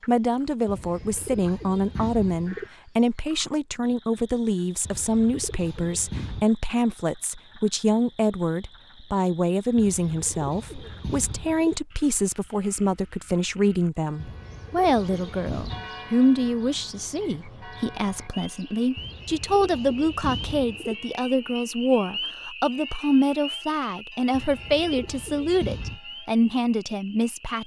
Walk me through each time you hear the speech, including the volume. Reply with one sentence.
The speech can be heard from 0.1 to 27.6 s, at a steady volume.